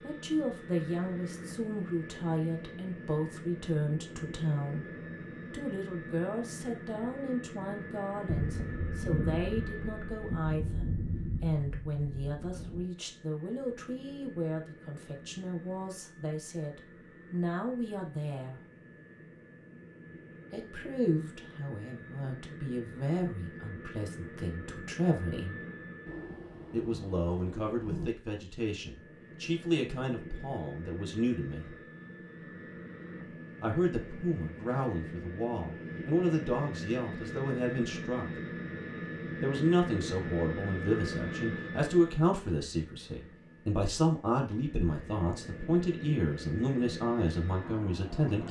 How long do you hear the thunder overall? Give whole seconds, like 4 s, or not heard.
7 s.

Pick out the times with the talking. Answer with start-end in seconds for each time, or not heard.
0.0-4.9, 5.5-18.6, 20.5-25.6, 26.7-31.8, 33.6-38.4, 39.4-48.4.